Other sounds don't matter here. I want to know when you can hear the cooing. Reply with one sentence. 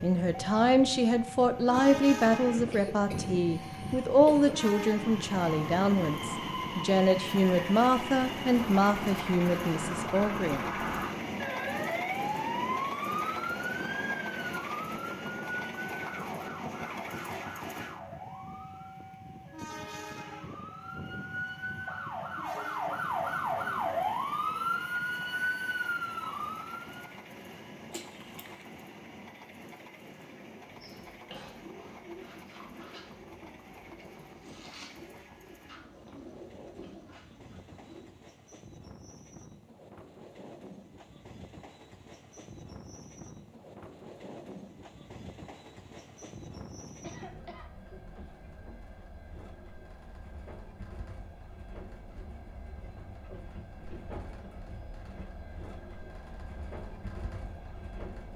The cooing can be heard from 30.6 to 38.0 s.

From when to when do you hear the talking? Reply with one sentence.
The talking can be heard from 0.0 to 10.7 s.